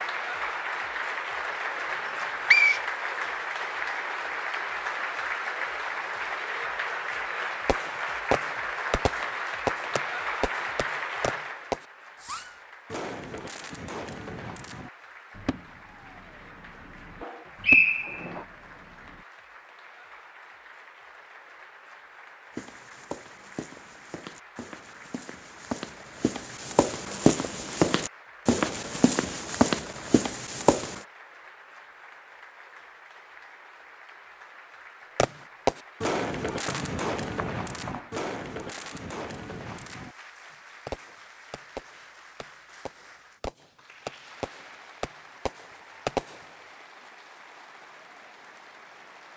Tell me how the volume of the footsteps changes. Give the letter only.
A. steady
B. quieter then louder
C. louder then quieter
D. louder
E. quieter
D.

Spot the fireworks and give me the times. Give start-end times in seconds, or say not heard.
7.7-19.2, 35.1-40.1, 40.9-46.4.